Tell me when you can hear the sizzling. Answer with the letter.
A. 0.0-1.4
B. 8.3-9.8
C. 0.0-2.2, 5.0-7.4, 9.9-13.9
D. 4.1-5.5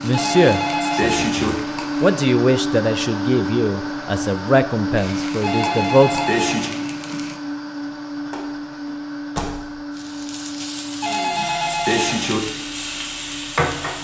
C.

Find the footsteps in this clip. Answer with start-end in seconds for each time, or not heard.
not heard.